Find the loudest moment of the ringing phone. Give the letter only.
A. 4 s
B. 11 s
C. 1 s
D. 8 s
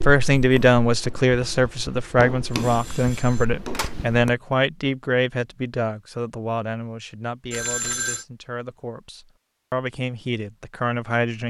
D.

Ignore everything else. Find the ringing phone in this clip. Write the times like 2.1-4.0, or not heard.
2.6-4.0, 7.5-8.2.